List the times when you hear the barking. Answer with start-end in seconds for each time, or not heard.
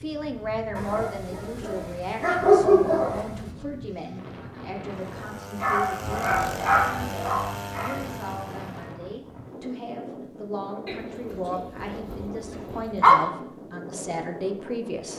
0.8-3.2, 5.6-8.1, 10.8-13.2.